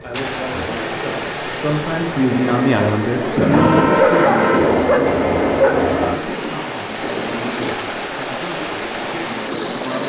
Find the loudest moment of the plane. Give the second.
4 s.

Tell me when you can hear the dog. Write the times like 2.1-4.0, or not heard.
3.5-6.2.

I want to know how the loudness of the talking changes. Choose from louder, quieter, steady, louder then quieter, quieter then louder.
louder then quieter.